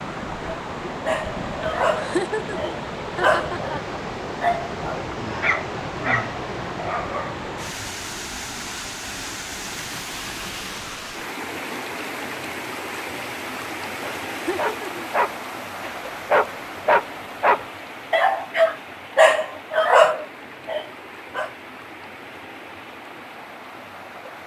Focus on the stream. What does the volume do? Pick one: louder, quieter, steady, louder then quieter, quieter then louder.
quieter.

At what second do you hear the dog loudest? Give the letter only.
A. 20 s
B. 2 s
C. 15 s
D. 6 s
A.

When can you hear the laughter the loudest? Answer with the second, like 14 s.
2 s.